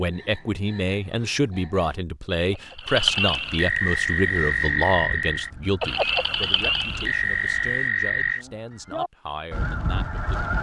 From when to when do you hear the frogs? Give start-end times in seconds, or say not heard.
0.0-8.4.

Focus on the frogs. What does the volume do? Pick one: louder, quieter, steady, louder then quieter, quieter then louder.
louder.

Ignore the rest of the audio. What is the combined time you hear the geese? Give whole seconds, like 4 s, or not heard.
7 s.